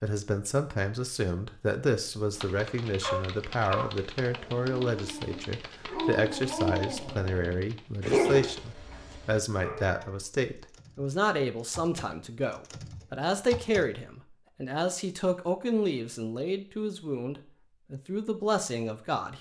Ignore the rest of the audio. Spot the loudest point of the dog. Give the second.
8 s.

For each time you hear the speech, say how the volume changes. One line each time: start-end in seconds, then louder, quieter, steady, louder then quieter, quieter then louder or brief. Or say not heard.
0.0-19.3 steady.